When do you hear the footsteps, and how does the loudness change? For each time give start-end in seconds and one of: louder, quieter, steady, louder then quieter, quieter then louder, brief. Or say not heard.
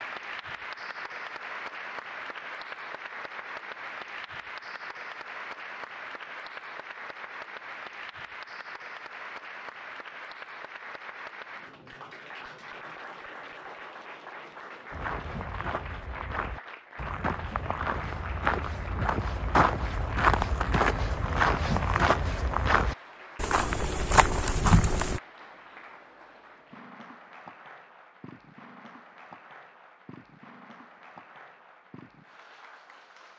14.9-25.2 louder.